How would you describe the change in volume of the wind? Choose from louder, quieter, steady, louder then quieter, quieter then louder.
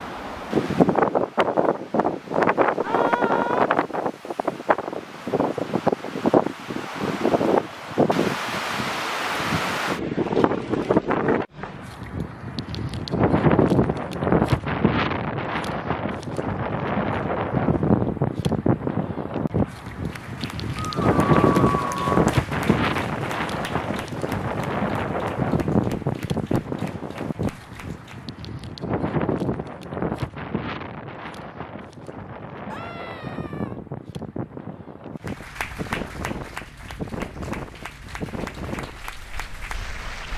quieter.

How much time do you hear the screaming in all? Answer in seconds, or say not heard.
3 s.